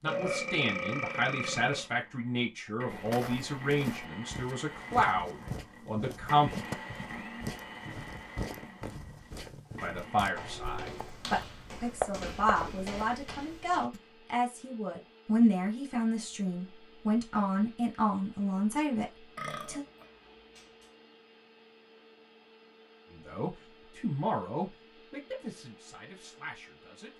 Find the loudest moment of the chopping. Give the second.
12 s.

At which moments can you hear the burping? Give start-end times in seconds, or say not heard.
0.1-1.9, 19.4-20.6.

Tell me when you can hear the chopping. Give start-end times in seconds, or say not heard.
10.7-13.1.